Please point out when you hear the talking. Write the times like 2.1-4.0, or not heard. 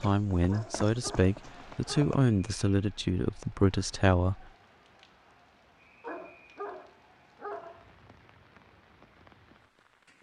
0.0-4.5.